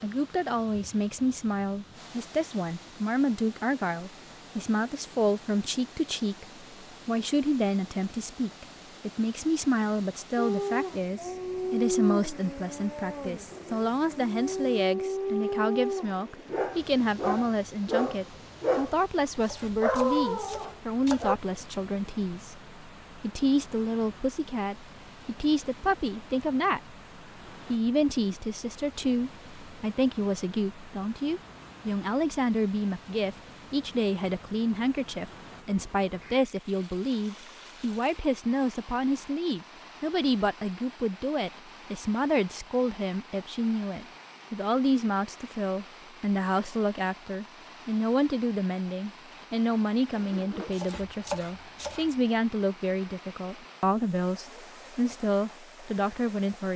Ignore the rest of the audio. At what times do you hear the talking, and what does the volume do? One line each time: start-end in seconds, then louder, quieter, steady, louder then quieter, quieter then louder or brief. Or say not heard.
0.0-26.9 steady
27.6-56.7 steady.